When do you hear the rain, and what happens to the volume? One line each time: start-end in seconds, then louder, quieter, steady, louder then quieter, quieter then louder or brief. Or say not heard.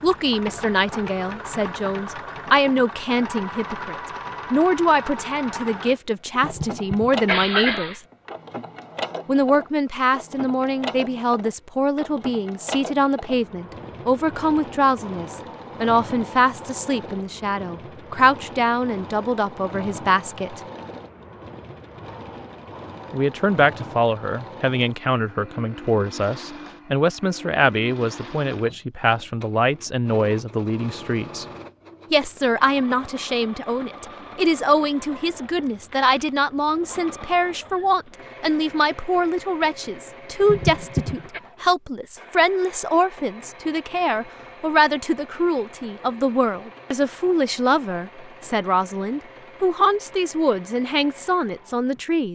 not heard.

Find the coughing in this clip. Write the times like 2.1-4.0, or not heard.
6.3-8.0, 40.4-41.4.